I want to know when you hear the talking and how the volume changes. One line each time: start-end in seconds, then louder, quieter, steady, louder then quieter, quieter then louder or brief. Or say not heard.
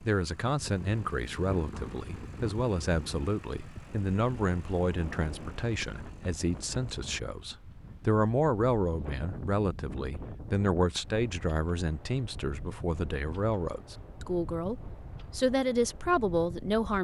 0.0-17.0 steady.